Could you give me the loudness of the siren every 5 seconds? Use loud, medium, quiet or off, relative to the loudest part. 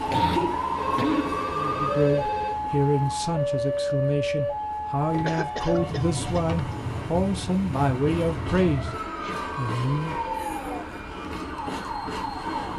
loud, medium, medium.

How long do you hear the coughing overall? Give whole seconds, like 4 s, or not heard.
3 s.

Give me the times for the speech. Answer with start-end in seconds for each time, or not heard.
1.5-8.9, 9.6-10.2.